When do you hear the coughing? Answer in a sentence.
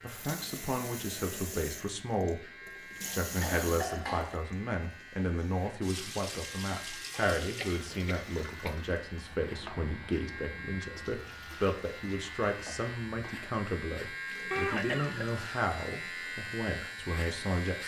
You can hear the coughing from 2.9 to 4.3 s, from 7.1 to 8.8 s and from 14.5 to 15.4 s.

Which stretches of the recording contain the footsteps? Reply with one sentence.
You can't hear the footsteps here.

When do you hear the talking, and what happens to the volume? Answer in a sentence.
You can hear the talking briefly from 0.0 to 2.5 s; and from 3.1 to 17.8 s, at a steady volume.